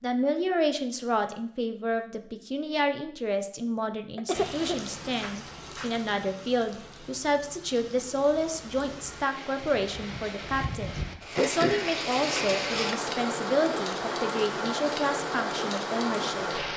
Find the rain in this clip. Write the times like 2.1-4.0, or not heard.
4.3-16.7.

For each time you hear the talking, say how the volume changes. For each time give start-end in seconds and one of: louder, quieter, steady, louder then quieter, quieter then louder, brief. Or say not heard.
0.0-16.4 steady.